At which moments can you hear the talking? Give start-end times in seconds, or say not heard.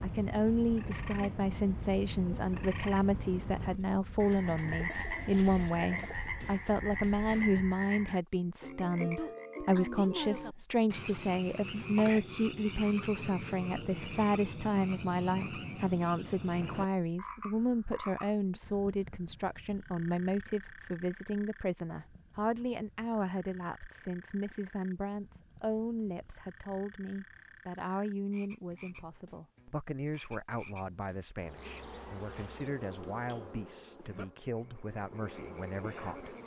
0.0-36.4.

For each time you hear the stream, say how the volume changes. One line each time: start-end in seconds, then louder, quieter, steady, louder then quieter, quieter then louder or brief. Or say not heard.
not heard.